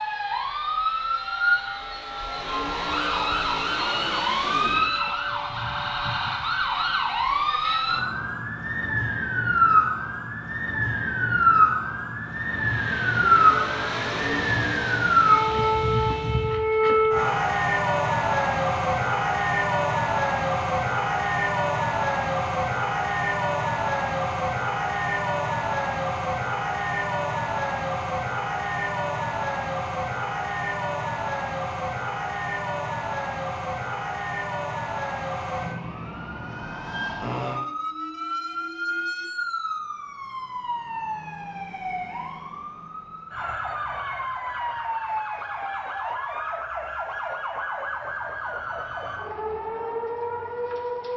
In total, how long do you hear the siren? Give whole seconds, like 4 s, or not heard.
51 s.